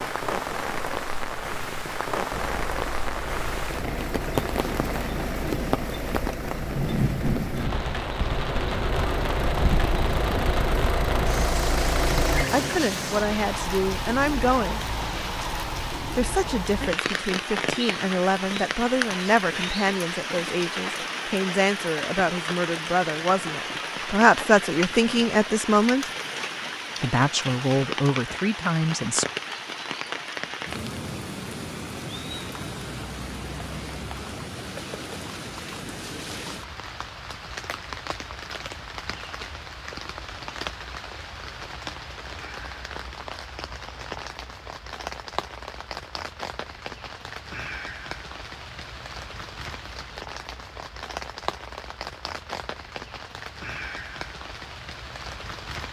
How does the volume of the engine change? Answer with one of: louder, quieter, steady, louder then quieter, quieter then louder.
louder.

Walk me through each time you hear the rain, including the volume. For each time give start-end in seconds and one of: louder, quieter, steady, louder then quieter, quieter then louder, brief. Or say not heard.
0.0-55.8 quieter.